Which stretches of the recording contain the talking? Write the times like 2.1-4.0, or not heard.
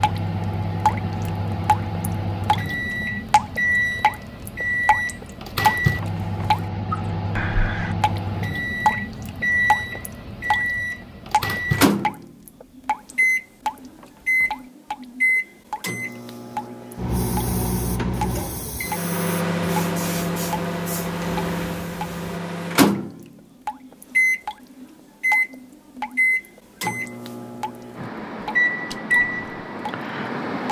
not heard.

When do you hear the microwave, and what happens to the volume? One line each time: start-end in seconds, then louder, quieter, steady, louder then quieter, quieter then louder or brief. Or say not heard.
0.0-30.6 steady.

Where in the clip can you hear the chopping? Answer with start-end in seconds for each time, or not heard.
not heard.